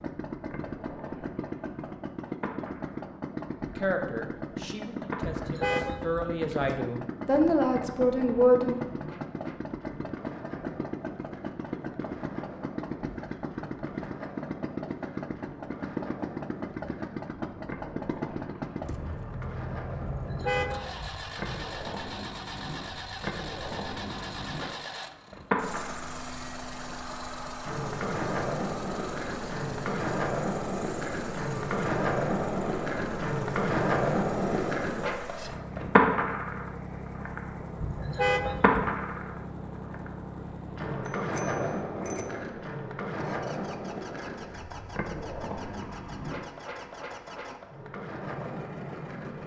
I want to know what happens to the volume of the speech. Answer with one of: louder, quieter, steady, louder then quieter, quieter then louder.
louder.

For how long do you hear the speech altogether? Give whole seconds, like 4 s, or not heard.
5 s.